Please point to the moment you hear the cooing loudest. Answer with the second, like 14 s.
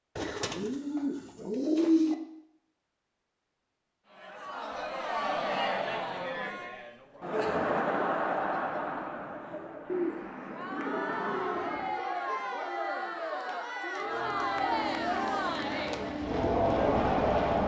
2 s.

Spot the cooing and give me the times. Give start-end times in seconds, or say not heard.
0.1-2.1, 9.8-11.9.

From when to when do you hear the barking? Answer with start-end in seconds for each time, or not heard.
not heard.